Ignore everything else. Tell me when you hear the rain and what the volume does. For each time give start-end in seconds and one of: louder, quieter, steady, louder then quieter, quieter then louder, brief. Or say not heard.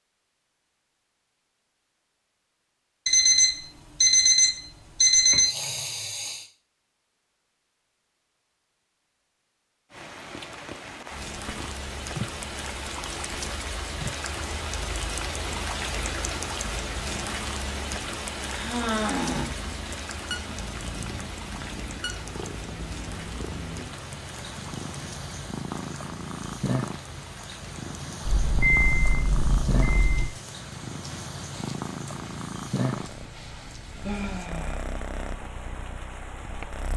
9.9-36.9 quieter.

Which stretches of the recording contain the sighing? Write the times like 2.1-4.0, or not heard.
5.4-6.5, 18.5-19.6, 34.0-34.9.